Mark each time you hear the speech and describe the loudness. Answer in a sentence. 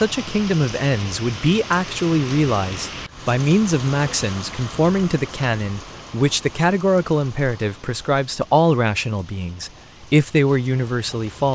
The speech can be heard from 0.0 to 11.5 s, at a steady volume.